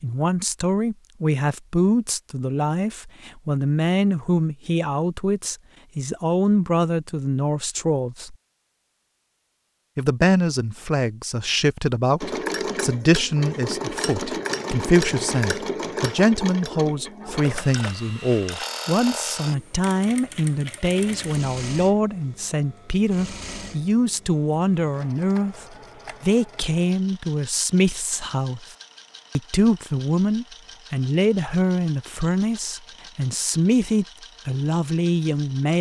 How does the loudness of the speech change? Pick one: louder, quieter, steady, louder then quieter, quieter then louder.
steady.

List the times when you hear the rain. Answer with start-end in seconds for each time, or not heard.
not heard.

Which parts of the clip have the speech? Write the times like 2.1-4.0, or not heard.
0.0-8.3, 9.9-28.8, 29.4-35.7.